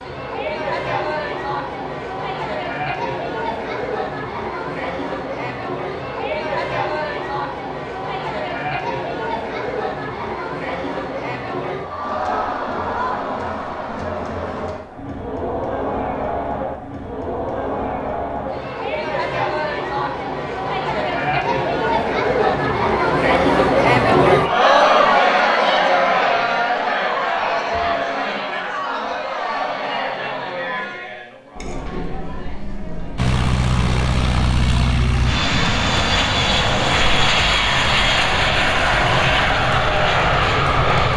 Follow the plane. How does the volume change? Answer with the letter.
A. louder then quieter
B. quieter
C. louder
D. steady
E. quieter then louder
D.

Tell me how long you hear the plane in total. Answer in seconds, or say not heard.
8 s.